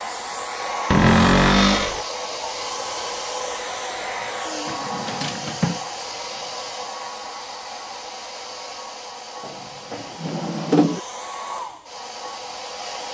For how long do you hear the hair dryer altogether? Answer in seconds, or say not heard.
13 s.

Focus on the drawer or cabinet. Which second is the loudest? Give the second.
1 s.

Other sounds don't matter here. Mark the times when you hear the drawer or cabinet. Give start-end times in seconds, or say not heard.
0.9-2.0, 4.7-5.8, 9.4-11.0.